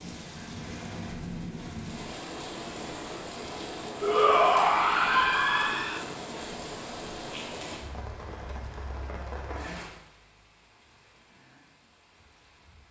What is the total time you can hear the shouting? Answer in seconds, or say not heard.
2 s.